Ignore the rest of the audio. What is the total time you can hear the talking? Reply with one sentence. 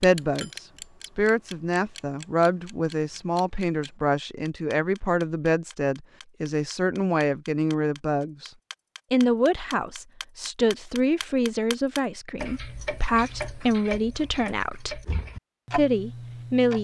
The talking can be heard for 15 seconds in total.